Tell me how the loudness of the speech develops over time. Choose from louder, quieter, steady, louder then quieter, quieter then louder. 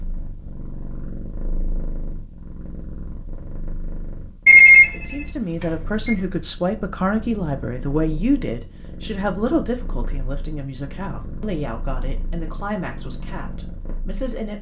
quieter.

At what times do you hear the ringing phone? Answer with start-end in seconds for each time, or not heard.
4.5-6.2.